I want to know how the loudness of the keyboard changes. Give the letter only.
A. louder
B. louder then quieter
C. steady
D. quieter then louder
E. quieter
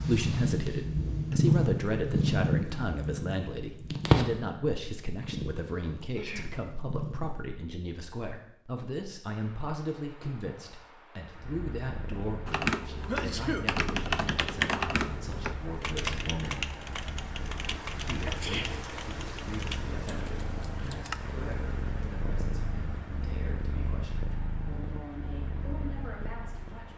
E.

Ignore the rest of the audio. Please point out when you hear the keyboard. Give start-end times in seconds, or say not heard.
12.4-21.2.